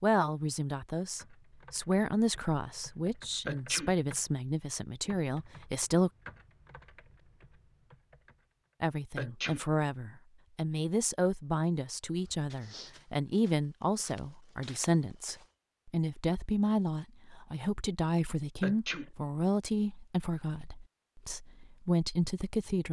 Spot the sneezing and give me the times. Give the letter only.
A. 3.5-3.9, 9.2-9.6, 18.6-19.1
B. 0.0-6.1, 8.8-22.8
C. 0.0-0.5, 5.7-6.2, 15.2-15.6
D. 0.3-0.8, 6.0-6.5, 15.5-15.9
A.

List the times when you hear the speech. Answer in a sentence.
The speech can be heard from 0.0 to 6.1 s and from 8.8 to 22.8 s.